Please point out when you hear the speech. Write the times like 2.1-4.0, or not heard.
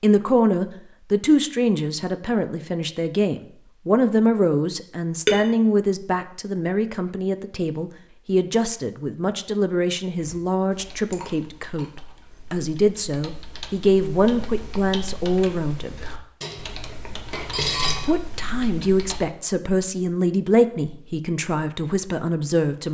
0.0-15.9, 18.0-22.8.